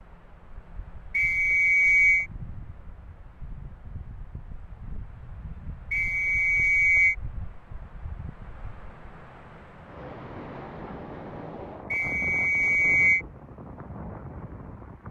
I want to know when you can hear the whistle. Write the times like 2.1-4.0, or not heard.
1.1-2.2, 5.9-7.2, 11.9-13.2.